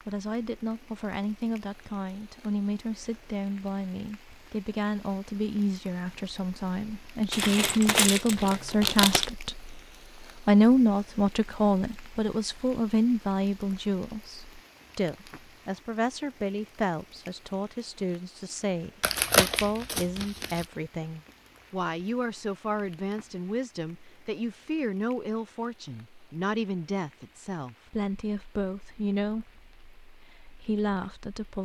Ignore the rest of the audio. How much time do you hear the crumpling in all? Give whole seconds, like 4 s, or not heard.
4 s.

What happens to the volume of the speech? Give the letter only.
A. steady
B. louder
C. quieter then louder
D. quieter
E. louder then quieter
E.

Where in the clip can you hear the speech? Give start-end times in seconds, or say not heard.
0.1-9.8, 10.4-31.6.